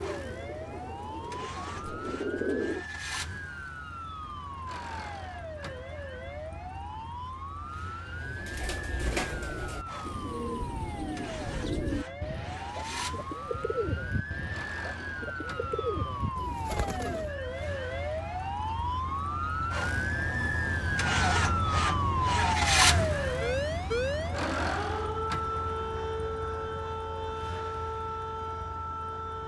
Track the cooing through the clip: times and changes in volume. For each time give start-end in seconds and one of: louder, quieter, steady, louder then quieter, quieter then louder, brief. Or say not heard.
0.0-2.9 brief
8.1-17.4 steady.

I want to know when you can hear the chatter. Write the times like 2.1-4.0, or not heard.
not heard.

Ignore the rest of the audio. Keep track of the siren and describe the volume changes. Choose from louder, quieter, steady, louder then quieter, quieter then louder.
louder.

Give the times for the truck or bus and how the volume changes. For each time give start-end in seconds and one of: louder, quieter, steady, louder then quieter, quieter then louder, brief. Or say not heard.
0.0-29.4 louder then quieter.